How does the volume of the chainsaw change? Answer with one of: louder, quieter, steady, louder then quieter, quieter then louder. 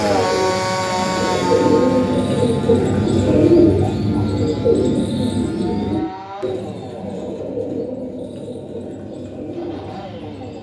quieter.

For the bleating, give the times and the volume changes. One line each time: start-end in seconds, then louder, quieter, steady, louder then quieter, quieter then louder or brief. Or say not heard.
not heard.